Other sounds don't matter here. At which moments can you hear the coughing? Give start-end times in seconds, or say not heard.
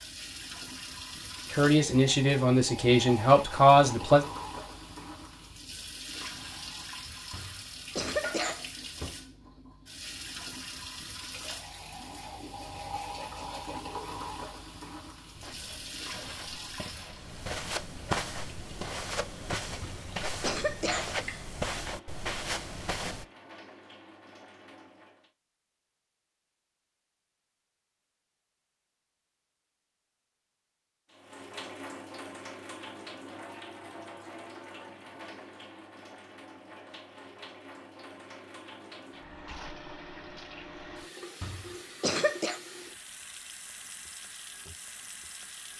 7.3-8.7, 19.8-21.2, 41.4-42.6.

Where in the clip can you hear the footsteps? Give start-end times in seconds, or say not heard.
15.3-23.2.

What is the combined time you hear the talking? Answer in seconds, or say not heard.
3 s.